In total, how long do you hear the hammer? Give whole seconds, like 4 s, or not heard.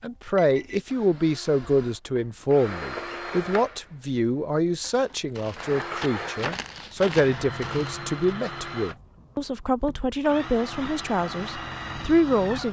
not heard.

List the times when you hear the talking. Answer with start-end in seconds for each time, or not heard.
0.0-12.6.